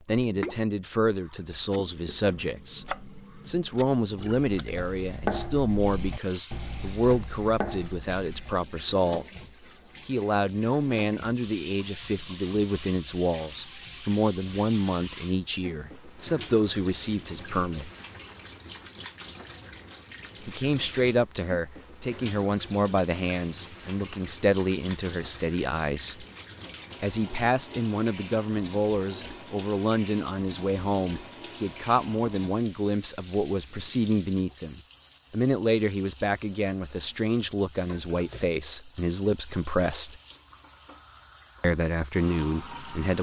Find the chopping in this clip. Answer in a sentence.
You can hear the chopping from 1.2 to 8.9 s.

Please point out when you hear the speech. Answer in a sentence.
The speech can be heard from 0.1 to 9.2 s, from 10.1 to 17.9 s, from 20.4 to 26.2 s, from 27.0 to 40.2 s and from 41.6 to 43.1 s.